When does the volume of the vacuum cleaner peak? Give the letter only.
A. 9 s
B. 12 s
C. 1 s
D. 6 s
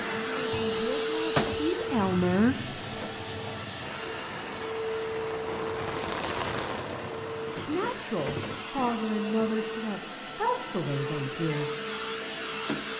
C.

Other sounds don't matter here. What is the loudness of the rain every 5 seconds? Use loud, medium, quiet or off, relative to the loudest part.
medium, loud, off.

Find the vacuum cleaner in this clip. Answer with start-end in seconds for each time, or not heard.
0.0-12.9.